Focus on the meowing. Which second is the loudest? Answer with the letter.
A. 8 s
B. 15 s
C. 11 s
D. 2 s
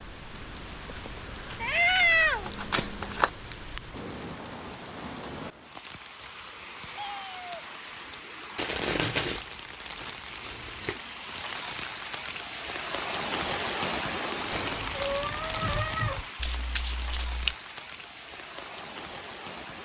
D.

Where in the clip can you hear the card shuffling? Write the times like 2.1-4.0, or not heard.
2.5-3.3, 8.6-11.0, 16.4-17.6.